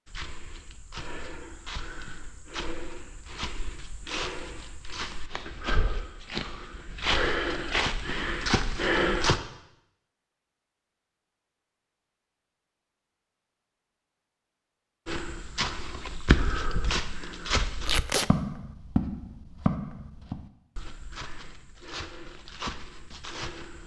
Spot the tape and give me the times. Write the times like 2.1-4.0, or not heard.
17.9-18.3.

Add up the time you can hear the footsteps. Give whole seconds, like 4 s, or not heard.
18 s.